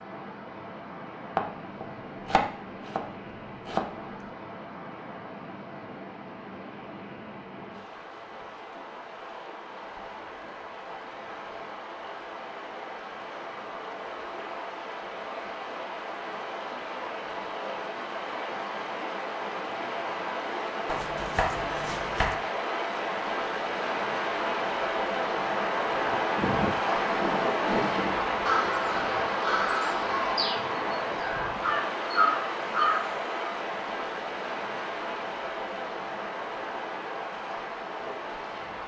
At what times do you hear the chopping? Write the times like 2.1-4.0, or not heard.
1.4-4.3, 20.9-22.4.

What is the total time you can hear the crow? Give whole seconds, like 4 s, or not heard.
7 s.